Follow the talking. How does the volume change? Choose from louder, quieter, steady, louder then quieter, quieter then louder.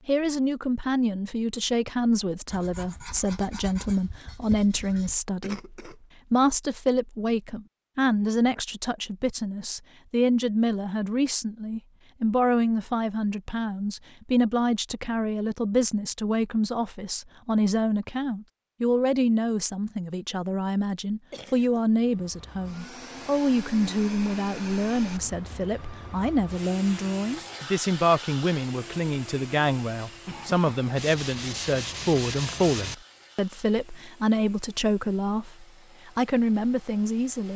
steady.